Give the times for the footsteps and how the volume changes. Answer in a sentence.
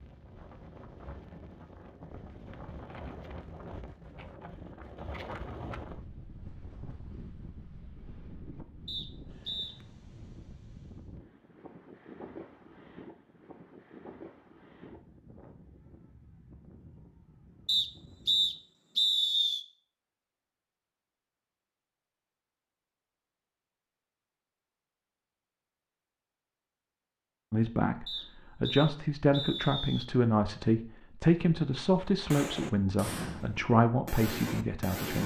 You can't hear the footsteps here.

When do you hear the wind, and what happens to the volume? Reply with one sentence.
You can hear the wind from 0.0 to 18.6 s, getting quieter.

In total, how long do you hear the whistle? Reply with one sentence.
The whistle can be heard for 5 seconds in total.